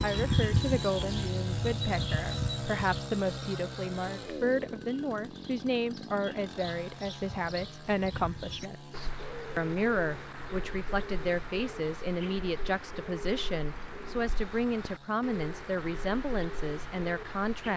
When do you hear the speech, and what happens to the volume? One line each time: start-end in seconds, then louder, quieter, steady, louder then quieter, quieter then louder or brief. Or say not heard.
0.0-17.7 steady.